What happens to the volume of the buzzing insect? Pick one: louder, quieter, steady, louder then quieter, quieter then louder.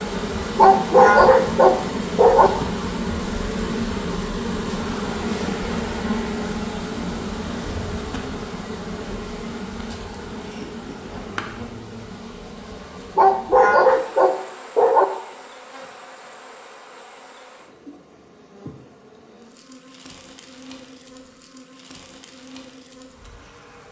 quieter.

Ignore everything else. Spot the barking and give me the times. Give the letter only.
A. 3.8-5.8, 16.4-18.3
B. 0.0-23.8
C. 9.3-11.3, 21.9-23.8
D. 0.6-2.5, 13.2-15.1
D.